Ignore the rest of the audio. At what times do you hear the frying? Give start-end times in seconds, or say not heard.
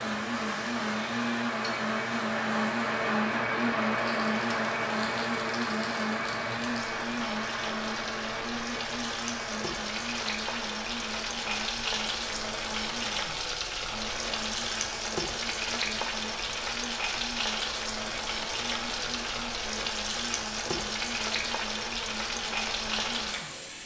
0.0-23.8.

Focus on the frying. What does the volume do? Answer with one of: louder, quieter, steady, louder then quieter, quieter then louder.
louder.